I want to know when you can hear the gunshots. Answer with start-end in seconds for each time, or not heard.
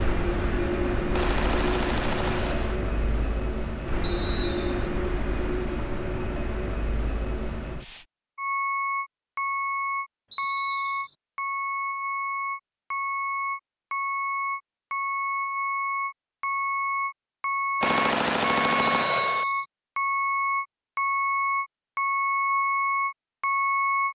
1.1-2.8, 17.8-19.4.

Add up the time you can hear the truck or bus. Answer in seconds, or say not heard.
24 s.